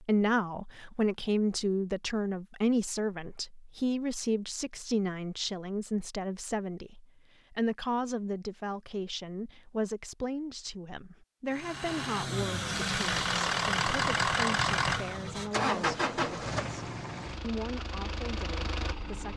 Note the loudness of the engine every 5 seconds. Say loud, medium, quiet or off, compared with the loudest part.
off, off, loud, medium.